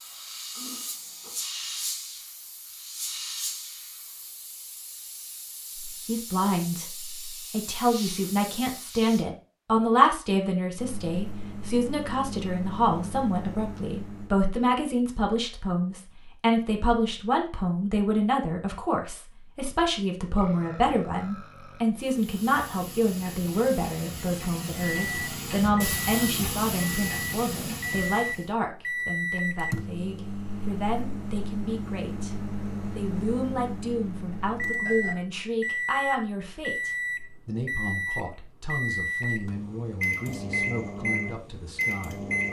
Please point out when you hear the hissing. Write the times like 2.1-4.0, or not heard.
0.0-9.2, 22.0-28.5.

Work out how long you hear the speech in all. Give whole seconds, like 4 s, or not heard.
37 s.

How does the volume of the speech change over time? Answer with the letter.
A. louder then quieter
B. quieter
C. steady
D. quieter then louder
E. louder
B.